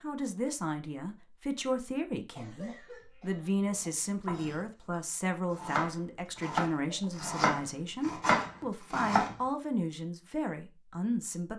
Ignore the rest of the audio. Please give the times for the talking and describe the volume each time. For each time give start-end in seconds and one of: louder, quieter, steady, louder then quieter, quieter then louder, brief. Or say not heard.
0.0-11.5 steady.